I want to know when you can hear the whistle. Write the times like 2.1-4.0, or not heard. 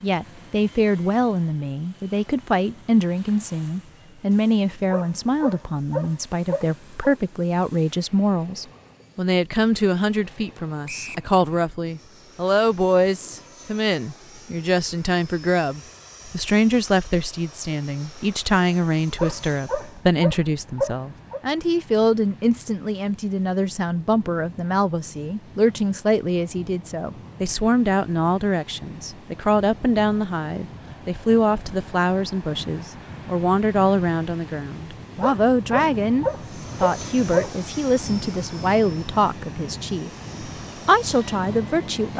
10.8-11.3.